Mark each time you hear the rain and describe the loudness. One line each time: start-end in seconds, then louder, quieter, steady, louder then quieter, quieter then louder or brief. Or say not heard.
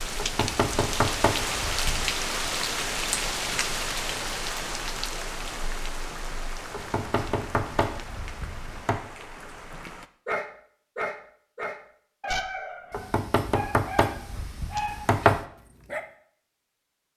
0.0-10.1 quieter.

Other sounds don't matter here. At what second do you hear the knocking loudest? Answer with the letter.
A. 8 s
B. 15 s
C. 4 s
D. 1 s
B.